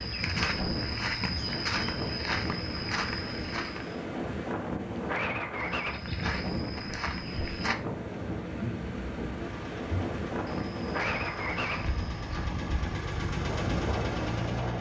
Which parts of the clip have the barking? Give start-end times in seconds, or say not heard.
not heard.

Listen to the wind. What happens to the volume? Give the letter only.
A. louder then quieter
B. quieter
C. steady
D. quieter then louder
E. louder
C.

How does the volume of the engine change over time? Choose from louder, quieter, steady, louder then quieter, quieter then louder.
louder.